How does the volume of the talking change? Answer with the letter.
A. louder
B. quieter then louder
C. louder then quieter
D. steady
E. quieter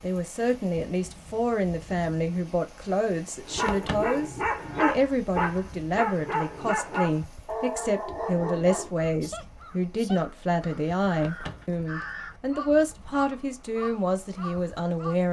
D.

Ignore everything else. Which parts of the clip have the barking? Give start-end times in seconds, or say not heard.
3.5-9.1.